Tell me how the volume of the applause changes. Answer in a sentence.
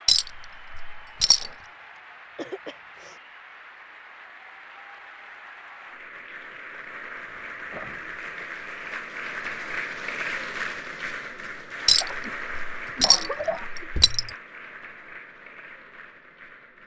The loudness of the applause goes up, then down.